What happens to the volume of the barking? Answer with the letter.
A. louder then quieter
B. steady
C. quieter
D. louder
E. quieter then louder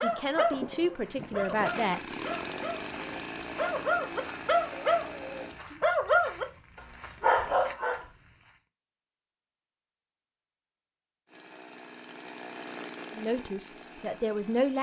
E.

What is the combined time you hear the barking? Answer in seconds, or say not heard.
8 s.